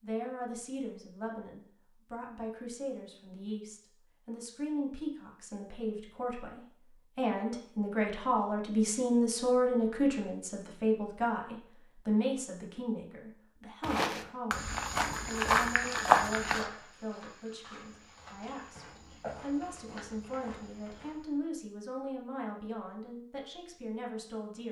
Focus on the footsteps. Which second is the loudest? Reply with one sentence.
The loudest moment of the footsteps is at 16 seconds.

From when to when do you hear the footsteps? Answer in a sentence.
You can hear the footsteps from 13.8 to 21.3 s.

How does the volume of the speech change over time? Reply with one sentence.
The loudness of the speech goes up, then down.